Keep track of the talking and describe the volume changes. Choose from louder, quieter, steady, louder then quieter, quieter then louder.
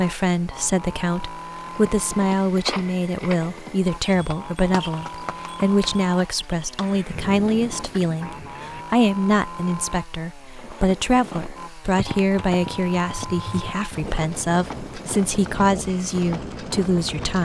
steady.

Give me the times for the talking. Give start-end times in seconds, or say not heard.
0.0-17.4.